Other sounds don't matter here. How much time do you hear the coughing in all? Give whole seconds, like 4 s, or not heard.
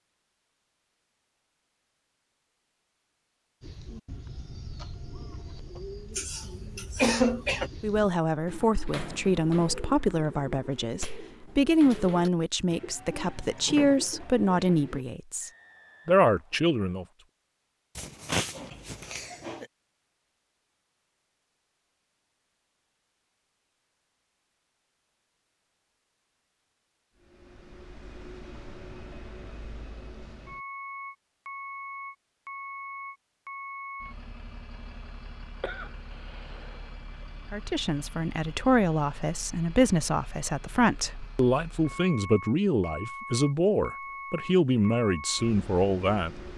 5 s.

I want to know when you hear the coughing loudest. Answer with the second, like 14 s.
7 s.